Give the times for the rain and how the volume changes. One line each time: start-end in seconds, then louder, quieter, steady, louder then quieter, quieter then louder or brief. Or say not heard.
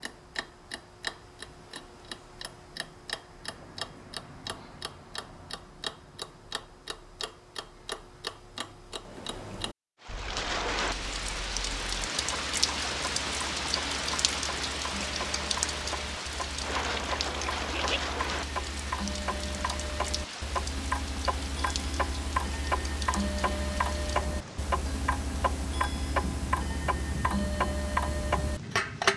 10.0-29.1 quieter.